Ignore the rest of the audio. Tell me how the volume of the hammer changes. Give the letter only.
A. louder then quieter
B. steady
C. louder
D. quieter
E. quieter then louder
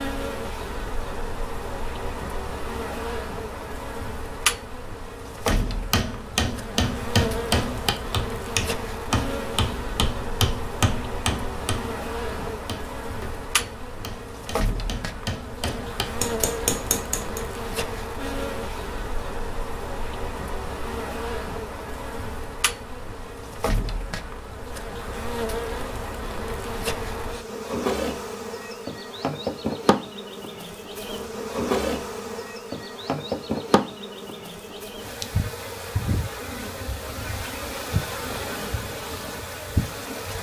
E.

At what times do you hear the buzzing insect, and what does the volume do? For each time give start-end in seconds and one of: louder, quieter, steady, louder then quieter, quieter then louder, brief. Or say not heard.
0.0-40.3 steady.